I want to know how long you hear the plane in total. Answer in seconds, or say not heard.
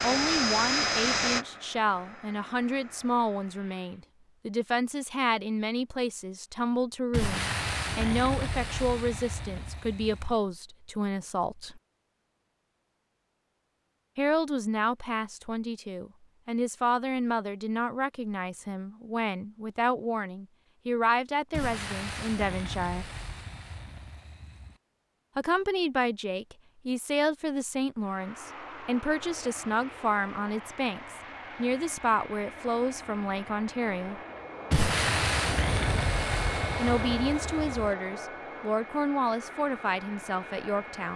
17 s.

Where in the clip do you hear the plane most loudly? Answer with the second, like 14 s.
1 s.